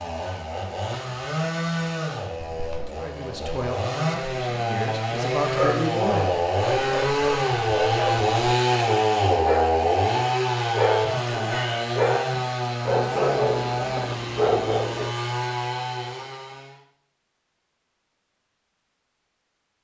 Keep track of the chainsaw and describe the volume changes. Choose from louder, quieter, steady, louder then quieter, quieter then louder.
louder then quieter.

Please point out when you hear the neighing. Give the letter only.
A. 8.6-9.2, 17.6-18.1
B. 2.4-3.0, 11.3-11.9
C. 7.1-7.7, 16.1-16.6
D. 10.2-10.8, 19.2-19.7
B.